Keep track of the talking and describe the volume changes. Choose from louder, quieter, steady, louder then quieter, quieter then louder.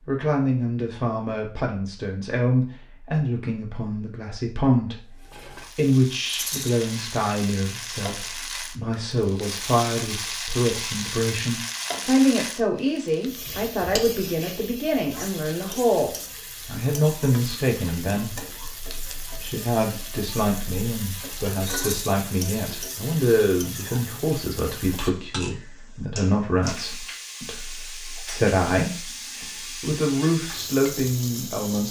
steady.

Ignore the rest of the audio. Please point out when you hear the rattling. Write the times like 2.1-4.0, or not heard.
6.2-6.7, 21.6-22.1.